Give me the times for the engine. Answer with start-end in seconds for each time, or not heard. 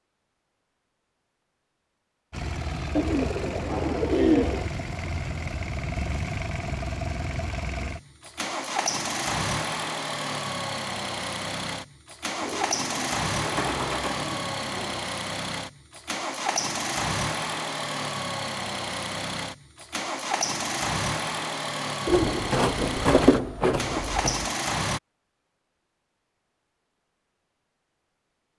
2.3-25.0.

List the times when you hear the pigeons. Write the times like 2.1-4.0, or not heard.
3.0-4.7, 12.4-15.0, 22.1-24.4.